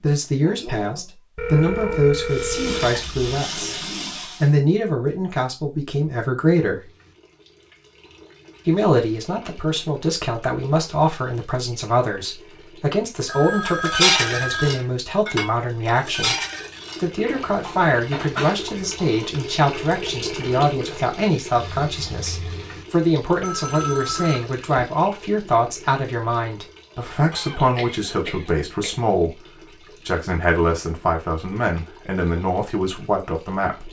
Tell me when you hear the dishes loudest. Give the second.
14 s.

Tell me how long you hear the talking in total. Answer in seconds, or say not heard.
30 s.